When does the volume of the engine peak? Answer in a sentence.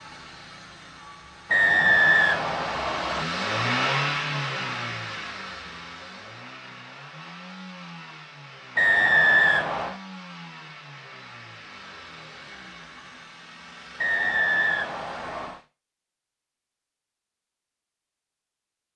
The volume of the engine peaks at 4 seconds.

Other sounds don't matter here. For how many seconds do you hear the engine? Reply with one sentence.
The engine can be heard for 16 seconds in total.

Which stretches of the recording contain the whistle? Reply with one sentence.
The whistle can be heard from 1.5 to 3.2 s, from 8.8 to 9.9 s and from 13.9 to 15.6 s.